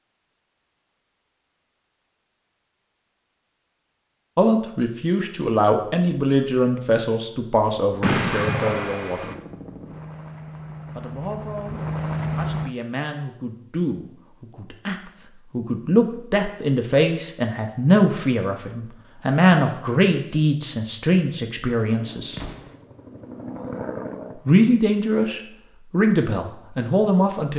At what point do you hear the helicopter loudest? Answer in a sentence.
The volume of the helicopter peaks at 12 seconds.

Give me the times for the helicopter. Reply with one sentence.
You can hear the helicopter from 9.2 to 12.8 s and from 21.9 to 24.4 s.